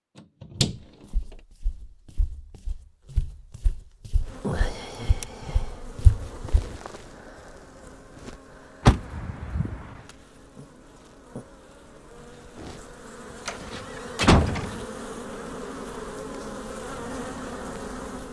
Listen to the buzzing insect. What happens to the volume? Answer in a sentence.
The volume of the buzzing insect goes down, then up.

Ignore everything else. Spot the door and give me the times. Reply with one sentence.
The door can be heard from 0.4 to 0.8 s, from 8.8 to 9.9 s and from 13.4 to 14.8 s.